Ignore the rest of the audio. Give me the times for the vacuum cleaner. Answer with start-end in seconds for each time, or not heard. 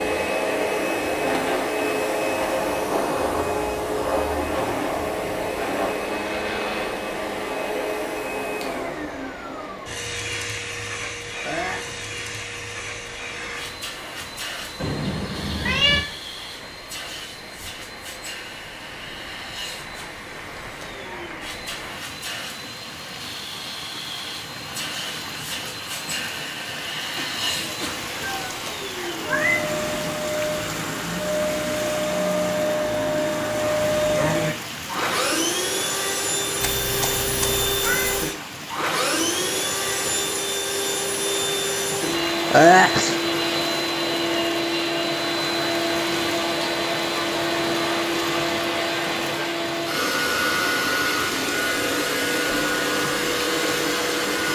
0.0-54.5.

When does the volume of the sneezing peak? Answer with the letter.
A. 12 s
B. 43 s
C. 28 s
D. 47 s
B.